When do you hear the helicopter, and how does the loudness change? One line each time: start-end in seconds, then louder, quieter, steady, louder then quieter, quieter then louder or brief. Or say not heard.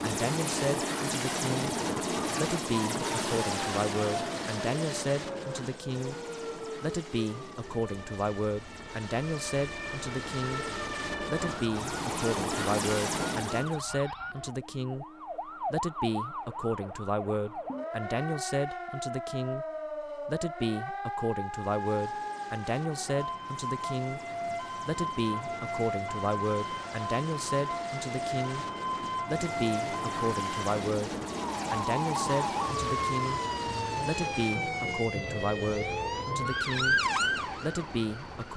0.0-13.8 quieter then louder
21.4-38.5 louder then quieter.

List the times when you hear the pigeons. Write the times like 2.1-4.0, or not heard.
not heard.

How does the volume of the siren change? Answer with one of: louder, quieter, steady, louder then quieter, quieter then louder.
louder.